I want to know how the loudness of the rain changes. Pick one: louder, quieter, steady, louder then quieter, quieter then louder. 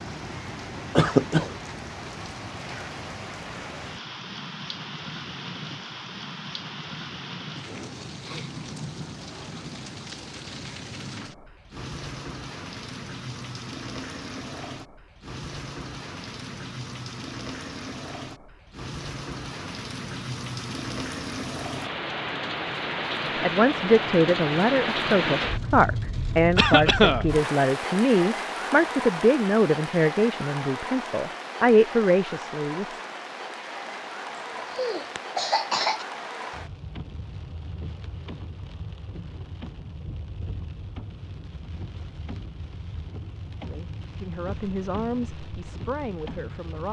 louder then quieter.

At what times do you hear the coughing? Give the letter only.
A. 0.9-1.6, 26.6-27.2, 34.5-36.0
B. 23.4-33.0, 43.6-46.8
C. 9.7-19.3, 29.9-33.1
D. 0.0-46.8
A.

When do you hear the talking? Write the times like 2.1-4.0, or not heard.
23.4-33.0, 43.6-46.8.